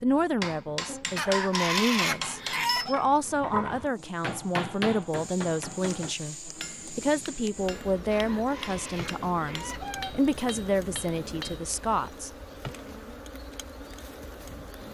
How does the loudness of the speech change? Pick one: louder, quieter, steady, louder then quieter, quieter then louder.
steady.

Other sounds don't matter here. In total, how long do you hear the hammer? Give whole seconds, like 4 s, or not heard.
11 s.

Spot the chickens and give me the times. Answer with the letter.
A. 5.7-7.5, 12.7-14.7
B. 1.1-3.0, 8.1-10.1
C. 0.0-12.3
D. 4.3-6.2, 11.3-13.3
B.